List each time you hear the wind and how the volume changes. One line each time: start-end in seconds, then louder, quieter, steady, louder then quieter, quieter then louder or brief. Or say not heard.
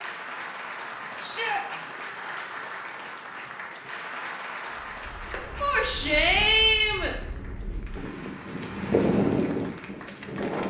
5.0-10.6 louder.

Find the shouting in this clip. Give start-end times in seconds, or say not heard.
1.2-1.6, 5.6-7.2.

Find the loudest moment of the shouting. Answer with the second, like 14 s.
7 s.